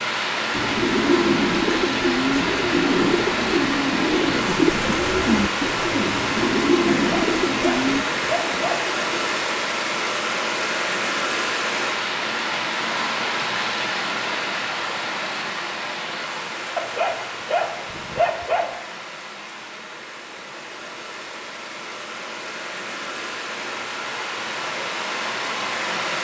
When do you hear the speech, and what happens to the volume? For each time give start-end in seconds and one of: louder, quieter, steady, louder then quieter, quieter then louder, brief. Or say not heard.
not heard.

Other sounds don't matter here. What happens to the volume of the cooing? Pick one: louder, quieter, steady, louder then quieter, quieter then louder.
steady.